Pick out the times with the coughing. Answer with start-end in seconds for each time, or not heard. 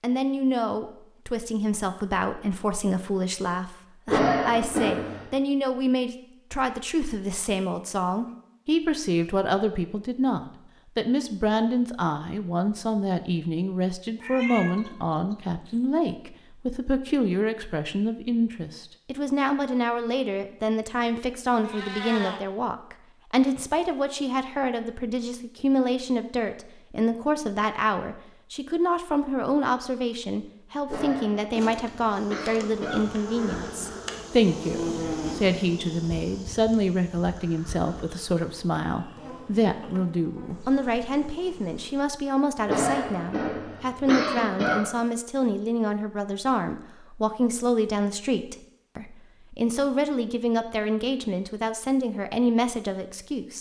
4.0-5.2, 30.9-33.1, 42.6-44.9.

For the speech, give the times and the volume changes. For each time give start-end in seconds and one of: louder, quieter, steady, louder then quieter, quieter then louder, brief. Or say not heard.
0.0-53.5 steady.